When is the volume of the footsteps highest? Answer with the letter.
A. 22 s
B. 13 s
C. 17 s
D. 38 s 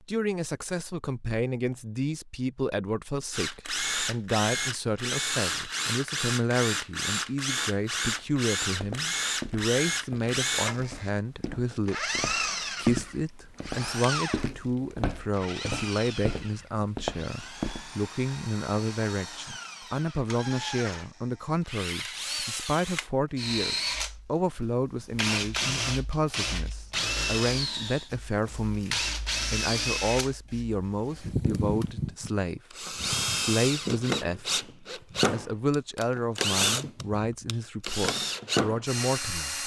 B.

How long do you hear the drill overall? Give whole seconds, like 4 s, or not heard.
36 s.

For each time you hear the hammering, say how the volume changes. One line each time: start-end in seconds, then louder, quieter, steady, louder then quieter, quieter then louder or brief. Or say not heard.
not heard.